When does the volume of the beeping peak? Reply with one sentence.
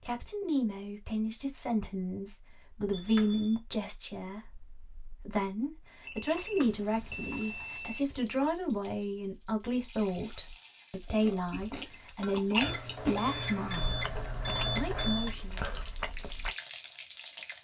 The loudest moment of the beeping is at 15 seconds.